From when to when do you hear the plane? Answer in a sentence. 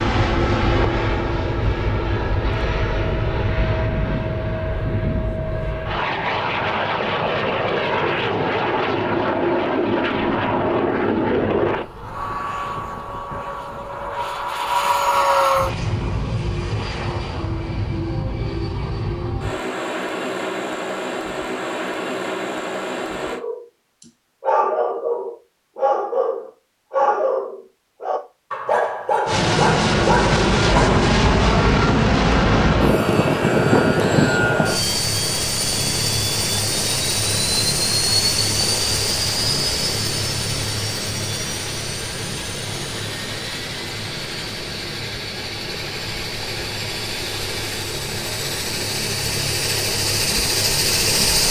You can hear the plane from 0.0 to 23.4 s and from 29.2 to 51.4 s.